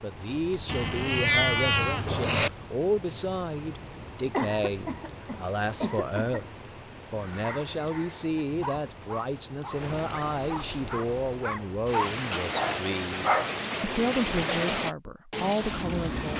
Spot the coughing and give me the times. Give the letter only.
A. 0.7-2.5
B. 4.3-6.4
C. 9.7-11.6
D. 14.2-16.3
B.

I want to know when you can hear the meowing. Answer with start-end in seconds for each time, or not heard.
0.7-2.5.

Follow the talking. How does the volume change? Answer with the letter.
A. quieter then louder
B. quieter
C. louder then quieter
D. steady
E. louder
D.